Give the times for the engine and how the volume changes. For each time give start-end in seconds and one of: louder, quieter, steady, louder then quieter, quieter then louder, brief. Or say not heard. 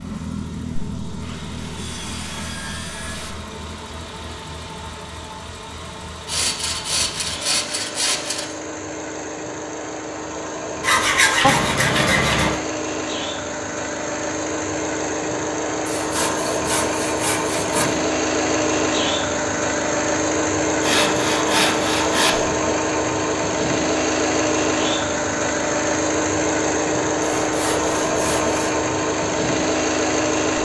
0.0-30.5 louder.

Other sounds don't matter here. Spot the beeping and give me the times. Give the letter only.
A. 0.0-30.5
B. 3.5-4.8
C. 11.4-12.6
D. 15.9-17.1
C.